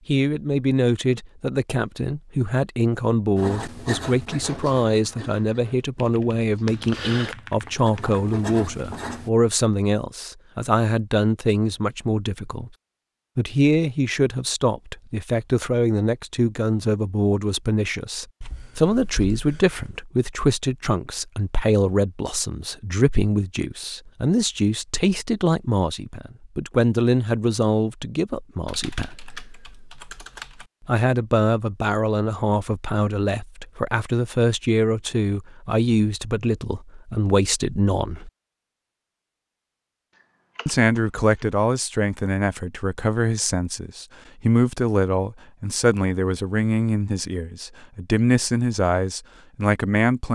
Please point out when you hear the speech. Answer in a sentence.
You can hear the speech from 0.1 to 12.7 s, from 13.3 to 29.1 s, from 30.9 to 38.3 s and from 40.6 to 50.3 s.